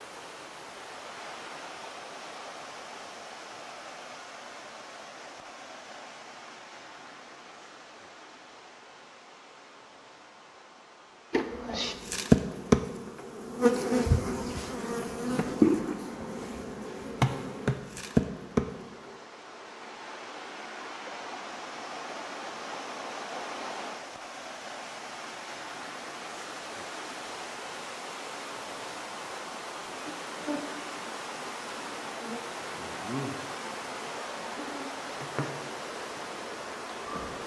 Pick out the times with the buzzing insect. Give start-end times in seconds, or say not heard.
11.3-19.1, 29.9-37.4.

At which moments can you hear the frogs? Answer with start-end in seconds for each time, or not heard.
not heard.